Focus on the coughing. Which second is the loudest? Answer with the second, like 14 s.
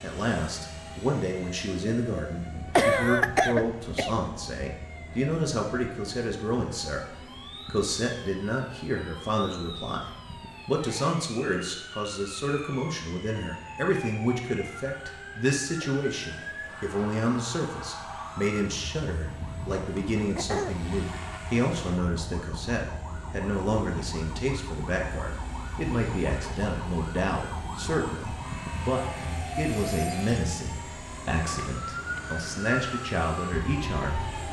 3 s.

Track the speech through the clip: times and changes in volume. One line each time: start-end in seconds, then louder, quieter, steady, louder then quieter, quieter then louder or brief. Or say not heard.
0.0-10.1 steady
10.7-34.2 steady.